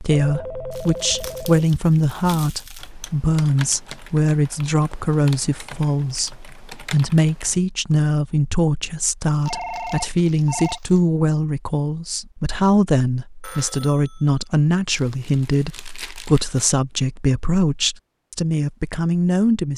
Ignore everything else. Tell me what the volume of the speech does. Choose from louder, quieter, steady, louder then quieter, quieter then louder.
steady.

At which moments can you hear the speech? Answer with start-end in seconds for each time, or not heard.
0.0-19.7.